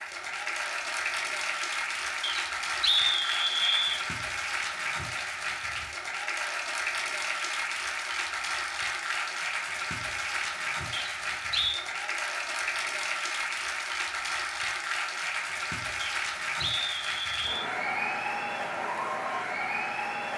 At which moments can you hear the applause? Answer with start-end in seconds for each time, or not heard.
0.0-20.3.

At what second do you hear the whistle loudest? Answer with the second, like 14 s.
3 s.